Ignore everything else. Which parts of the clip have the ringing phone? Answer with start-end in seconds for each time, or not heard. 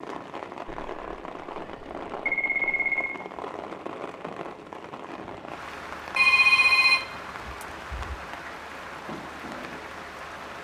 0.8-3.2, 6.2-8.2.